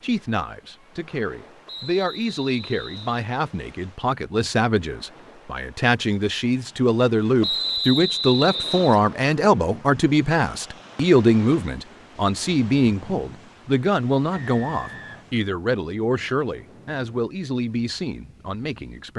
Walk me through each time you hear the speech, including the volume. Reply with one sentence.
You can hear the speech from 0.0 to 19.1 s, getting louder then quieter.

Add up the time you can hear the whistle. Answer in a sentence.
You can hear the whistle for 4 seconds altogether.